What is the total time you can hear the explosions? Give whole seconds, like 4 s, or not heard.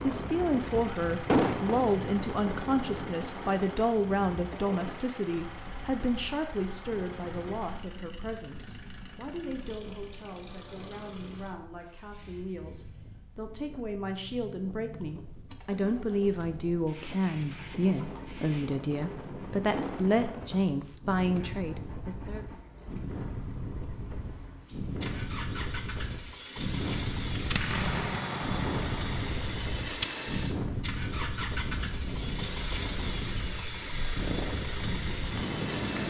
4 s.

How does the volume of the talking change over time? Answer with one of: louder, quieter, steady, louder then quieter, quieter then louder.
quieter then louder.